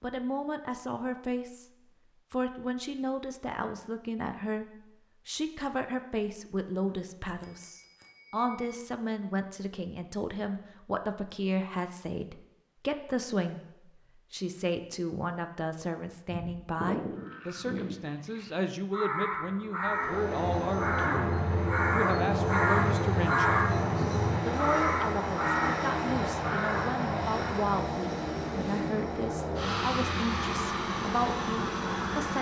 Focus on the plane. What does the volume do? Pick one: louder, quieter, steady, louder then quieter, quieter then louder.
steady.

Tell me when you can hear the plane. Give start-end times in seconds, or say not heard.
19.8-32.3.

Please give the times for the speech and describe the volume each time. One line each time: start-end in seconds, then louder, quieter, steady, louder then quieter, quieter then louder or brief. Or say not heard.
0.0-1.7 brief
2.3-32.3 steady.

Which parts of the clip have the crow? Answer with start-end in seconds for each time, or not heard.
16.2-27.7.